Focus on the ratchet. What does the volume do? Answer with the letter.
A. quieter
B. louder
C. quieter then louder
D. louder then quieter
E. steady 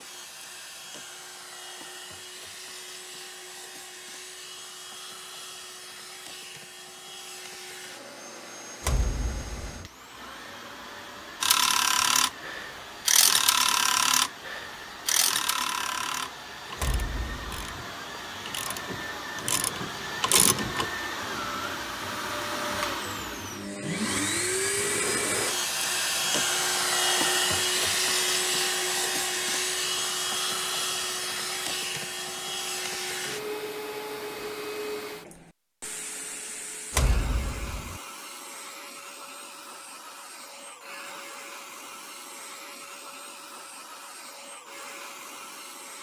C.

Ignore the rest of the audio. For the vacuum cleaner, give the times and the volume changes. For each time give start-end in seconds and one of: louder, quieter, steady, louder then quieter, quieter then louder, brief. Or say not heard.
0.0-45.9 louder then quieter.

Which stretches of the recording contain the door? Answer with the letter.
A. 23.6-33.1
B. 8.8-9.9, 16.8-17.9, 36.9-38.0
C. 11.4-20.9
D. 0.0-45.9
B.